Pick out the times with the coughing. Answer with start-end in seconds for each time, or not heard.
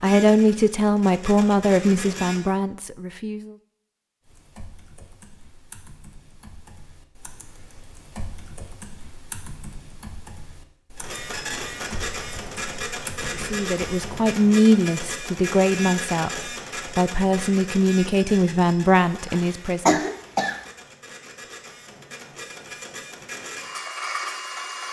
19.2-20.6.